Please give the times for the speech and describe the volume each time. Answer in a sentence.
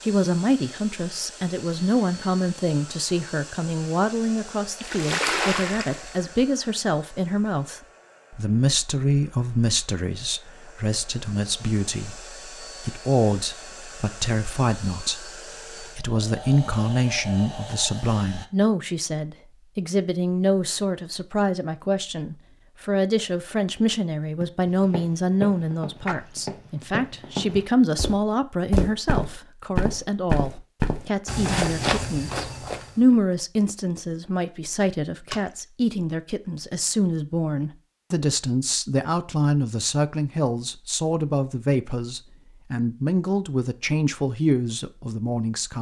You can hear the speech from 0.0 to 45.7 s, at a steady volume.